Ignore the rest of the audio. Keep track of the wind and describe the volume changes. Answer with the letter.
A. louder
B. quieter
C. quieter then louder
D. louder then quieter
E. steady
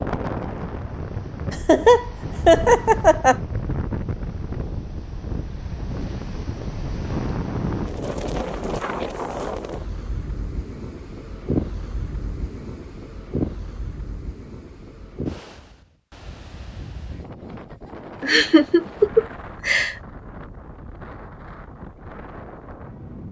B.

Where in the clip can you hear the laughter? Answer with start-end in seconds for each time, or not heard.
1.5-3.4, 18.2-19.9.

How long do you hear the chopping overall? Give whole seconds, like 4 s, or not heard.
not heard.